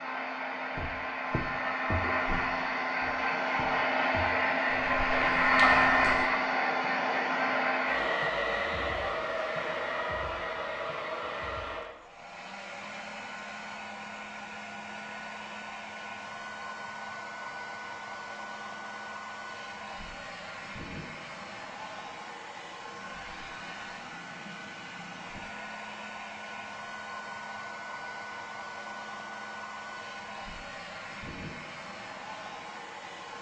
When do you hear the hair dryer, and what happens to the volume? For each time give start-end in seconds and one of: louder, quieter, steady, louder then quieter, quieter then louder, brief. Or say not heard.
0.0-33.3 quieter.